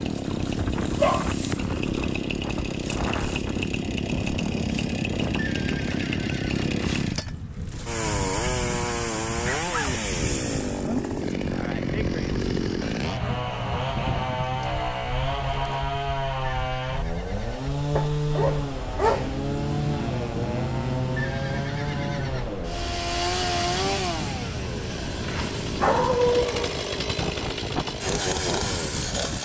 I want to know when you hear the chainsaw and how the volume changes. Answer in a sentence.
You can hear the chainsaw from 0.0 to 29.3 s, at a steady volume.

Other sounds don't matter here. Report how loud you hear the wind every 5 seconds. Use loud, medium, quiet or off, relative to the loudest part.
loud, loud, loud, medium, loud, loud.